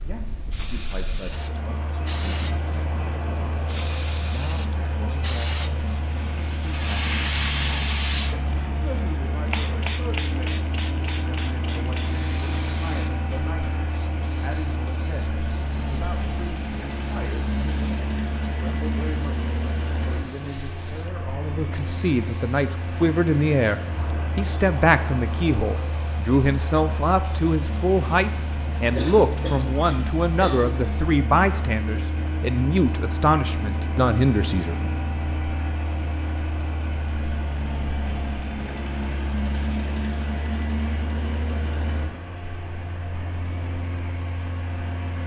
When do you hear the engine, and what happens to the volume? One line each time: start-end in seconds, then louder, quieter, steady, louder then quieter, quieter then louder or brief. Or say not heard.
0.0-45.2 steady.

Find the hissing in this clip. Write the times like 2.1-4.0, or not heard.
0.0-31.3.